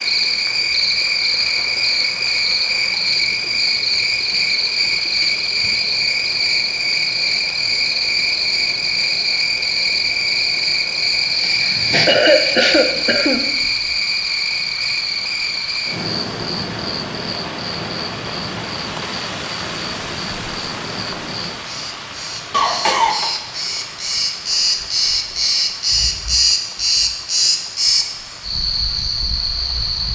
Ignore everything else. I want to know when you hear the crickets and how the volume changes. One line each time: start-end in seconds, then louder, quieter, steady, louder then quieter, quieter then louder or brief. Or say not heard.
0.0-30.1 quieter then louder.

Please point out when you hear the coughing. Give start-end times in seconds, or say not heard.
11.2-13.4, 22.5-23.3.